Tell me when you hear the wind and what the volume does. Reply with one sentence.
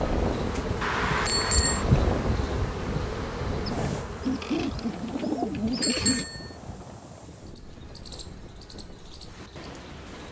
You can hear the wind from 0.0 to 10.2 s, getting quieter.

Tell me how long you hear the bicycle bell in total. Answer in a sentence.
You can hear the bicycle bell for 2 seconds altogether.